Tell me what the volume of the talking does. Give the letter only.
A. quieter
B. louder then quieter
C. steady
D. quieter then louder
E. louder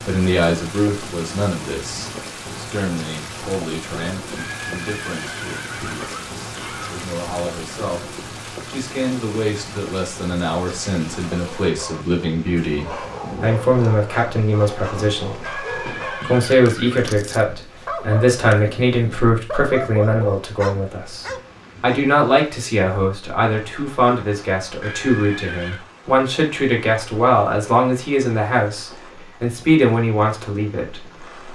E.